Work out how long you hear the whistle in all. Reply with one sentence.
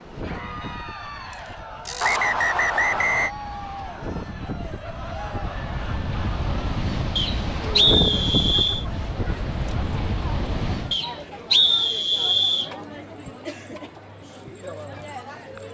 You can hear the whistle for 5 seconds altogether.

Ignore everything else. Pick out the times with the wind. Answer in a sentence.
You can hear the wind from 0.0 to 11.0 s.